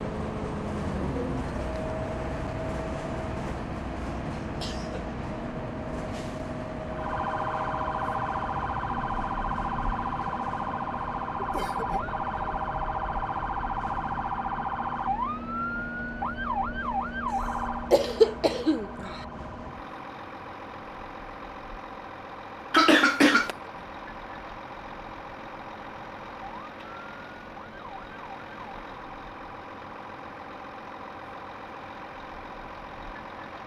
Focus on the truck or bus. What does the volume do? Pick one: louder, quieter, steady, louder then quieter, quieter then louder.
quieter.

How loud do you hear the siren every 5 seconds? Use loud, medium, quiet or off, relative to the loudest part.
off, loud, loud, loud, quiet, quiet, quiet.